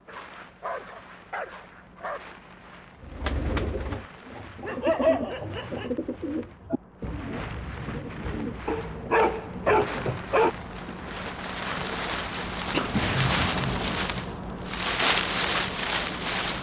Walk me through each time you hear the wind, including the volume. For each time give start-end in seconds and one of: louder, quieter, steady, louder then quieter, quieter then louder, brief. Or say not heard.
0.0-16.5 louder.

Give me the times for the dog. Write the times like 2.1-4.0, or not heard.
0.1-2.2, 4.7-6.0, 8.7-10.5, 12.7-14.0.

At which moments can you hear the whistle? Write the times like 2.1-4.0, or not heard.
not heard.